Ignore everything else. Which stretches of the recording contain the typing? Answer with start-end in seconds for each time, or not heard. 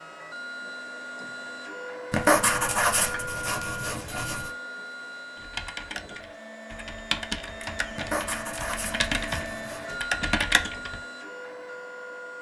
5.3-11.0.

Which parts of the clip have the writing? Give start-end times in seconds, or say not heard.
2.1-4.5, 8.0-9.9.